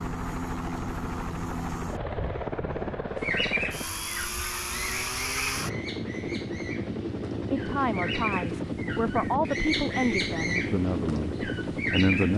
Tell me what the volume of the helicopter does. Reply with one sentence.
The volume of the helicopter stays about the same.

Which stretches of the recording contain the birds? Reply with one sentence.
The birds can be heard from 3.1 to 12.3 s.